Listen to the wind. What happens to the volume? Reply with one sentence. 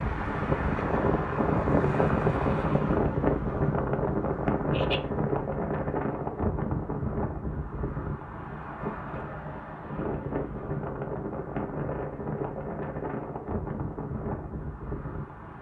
The loudness of the wind goes down.